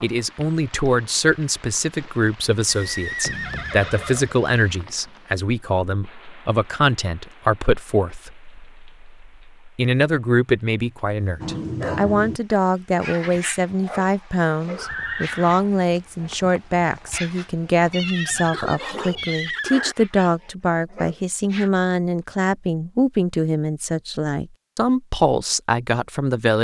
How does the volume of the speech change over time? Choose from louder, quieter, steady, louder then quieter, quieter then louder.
steady.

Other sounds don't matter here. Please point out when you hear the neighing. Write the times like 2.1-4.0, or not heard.
2.6-4.3, 14.8-15.7, 17.9-19.9.